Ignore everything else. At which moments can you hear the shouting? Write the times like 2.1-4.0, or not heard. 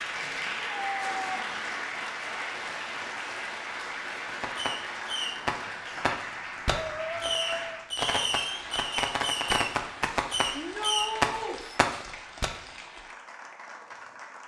0.4-1.6, 6.9-7.8, 10.5-11.6.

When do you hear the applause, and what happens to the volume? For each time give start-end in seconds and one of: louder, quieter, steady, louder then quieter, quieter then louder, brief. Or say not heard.
0.0-14.4 quieter.